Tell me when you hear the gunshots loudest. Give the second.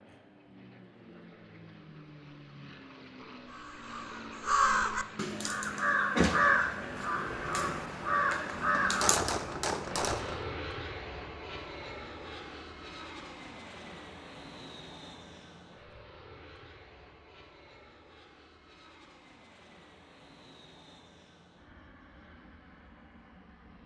9 s.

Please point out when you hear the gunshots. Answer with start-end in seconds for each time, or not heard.
8.8-10.4.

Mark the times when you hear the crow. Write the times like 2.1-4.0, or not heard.
3.5-9.2.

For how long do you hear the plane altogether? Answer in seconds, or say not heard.
24 s.